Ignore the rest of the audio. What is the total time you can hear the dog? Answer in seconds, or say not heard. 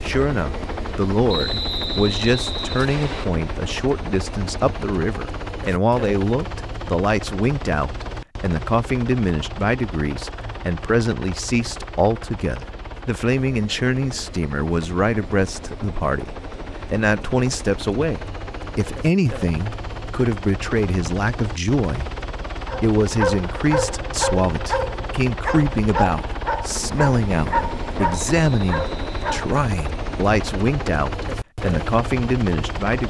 7 s.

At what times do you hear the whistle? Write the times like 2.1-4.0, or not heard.
1.2-3.2, 28.2-29.2.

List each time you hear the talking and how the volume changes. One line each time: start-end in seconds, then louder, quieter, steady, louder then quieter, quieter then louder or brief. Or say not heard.
0.0-33.0 steady.